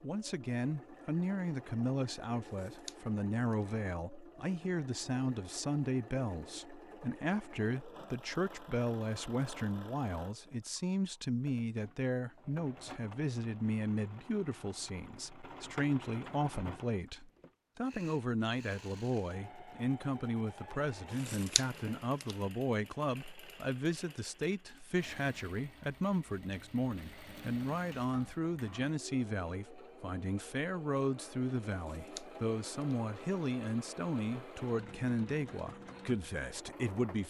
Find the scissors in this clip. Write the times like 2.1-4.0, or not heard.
2.5-3.6, 21.2-22.4, 31.9-33.0.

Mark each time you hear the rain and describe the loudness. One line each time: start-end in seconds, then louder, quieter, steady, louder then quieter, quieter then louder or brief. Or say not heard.
not heard.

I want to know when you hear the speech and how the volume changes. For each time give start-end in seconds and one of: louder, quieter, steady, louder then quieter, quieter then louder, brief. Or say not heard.
0.0-37.2 steady.